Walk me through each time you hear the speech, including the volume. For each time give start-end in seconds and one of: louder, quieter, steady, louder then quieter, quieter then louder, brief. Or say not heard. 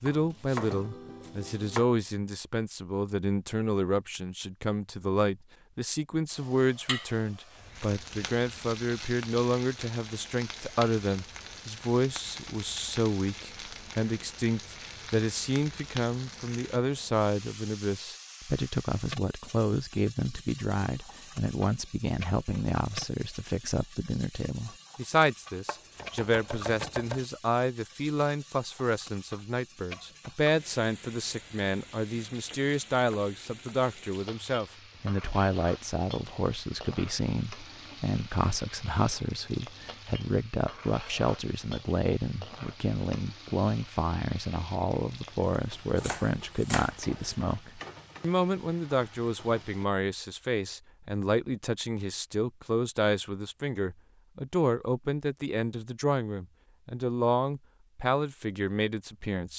0.0-59.5 steady.